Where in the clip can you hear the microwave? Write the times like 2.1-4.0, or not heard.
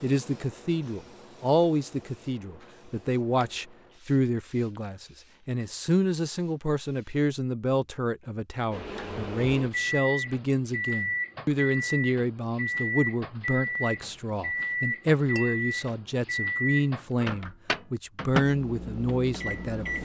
8.7-20.0.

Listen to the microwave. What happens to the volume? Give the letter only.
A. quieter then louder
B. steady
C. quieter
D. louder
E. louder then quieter
B.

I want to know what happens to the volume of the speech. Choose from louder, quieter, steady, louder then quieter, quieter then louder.
steady.